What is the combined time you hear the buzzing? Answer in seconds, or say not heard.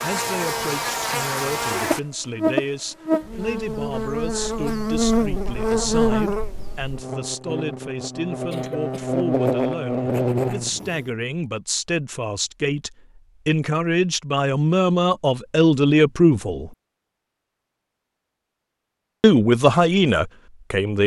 11 s.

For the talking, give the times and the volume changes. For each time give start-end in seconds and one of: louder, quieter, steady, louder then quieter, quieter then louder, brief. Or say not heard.
0.0-16.7 louder
19.2-21.0 brief.